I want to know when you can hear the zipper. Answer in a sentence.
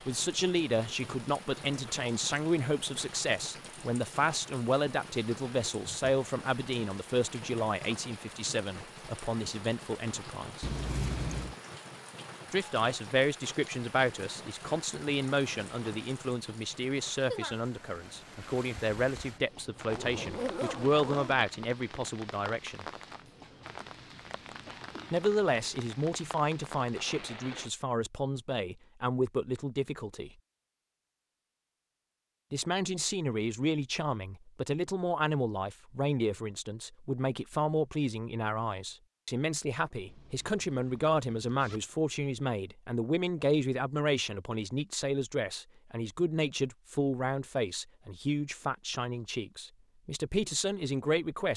The zipper can be heard from 10.6 to 11.6 s, from 19.9 to 21.4 s and from 40.0 to 41.9 s.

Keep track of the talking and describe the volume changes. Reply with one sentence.
The loudness of the talking stays about the same.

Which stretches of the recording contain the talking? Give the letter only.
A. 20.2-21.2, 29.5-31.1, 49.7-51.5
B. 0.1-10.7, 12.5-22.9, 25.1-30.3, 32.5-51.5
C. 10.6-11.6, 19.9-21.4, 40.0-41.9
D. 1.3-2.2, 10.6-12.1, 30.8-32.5
B.